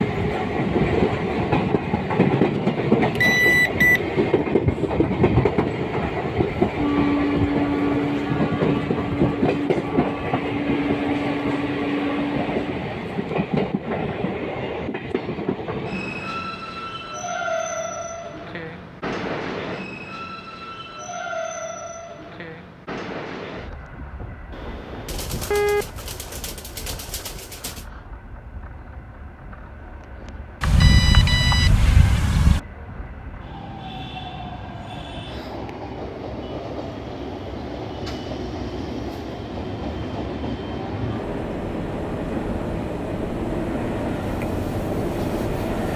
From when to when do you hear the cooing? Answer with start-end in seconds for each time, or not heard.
25.1-27.9.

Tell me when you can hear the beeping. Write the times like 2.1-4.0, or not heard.
3.1-4.0, 24.5-25.9, 30.6-32.6.